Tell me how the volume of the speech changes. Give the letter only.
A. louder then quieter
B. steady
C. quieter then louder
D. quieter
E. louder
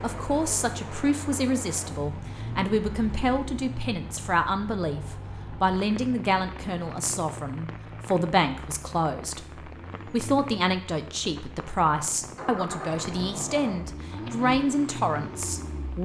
B.